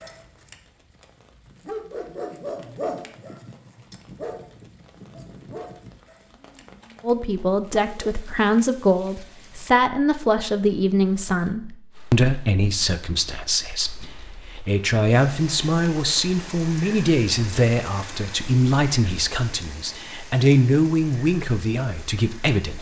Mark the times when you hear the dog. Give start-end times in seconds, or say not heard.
0.0-8.2.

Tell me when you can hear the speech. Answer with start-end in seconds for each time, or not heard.
7.0-22.7.